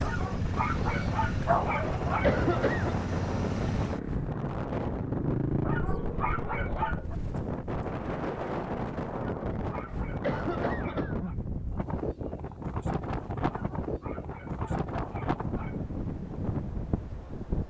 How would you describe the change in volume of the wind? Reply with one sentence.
The loudness of the wind stays about the same.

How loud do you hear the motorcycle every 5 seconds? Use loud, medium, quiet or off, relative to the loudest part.
loud, loud, off, off.